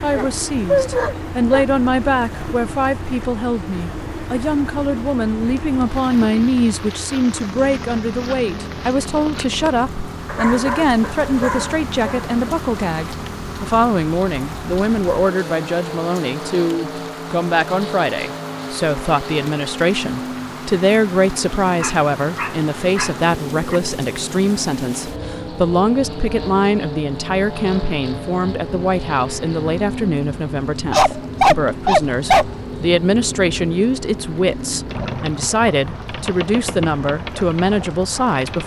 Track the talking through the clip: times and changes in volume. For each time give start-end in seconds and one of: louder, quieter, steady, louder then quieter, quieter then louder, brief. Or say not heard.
0.0-38.6 steady.